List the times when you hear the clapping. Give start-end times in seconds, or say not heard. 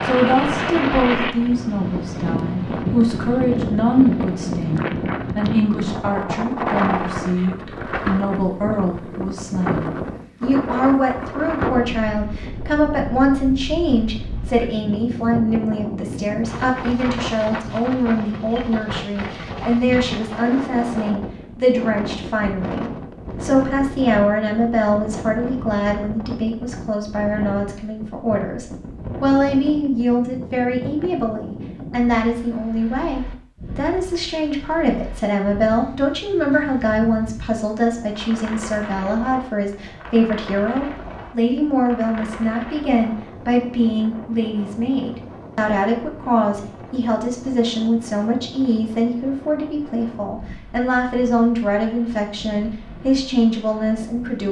not heard.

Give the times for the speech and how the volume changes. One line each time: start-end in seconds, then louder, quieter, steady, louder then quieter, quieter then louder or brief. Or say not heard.
0.0-54.4 steady.